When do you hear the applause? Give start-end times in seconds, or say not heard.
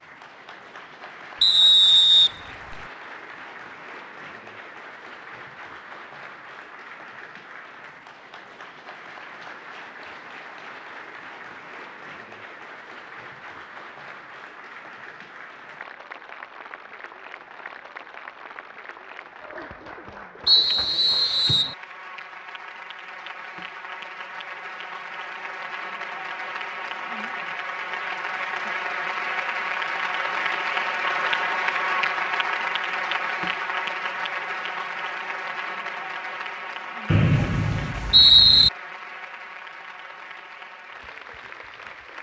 0.0-42.1.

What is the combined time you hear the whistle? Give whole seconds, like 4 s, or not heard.
4 s.